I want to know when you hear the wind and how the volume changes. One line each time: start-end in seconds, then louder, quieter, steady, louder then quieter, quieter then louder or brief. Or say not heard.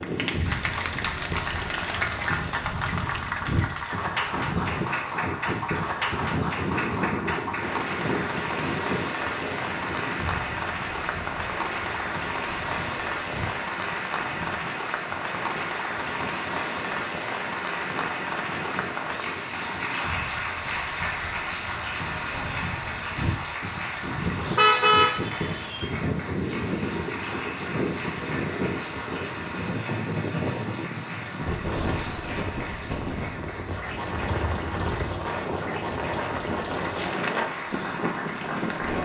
0.0-38.9 quieter then louder.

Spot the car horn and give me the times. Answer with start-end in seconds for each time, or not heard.
24.6-25.9.